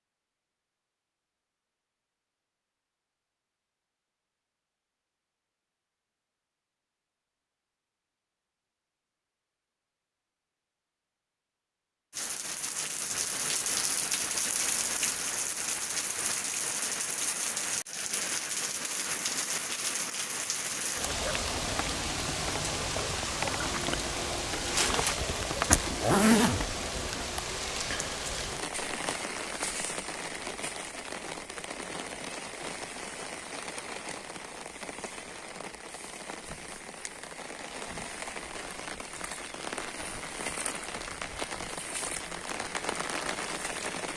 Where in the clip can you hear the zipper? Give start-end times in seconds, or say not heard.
25.6-27.2.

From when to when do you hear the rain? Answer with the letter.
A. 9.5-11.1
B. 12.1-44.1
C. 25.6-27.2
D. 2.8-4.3
B.